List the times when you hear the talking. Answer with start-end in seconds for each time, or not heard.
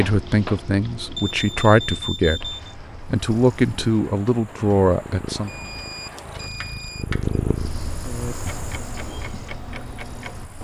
0.0-5.5.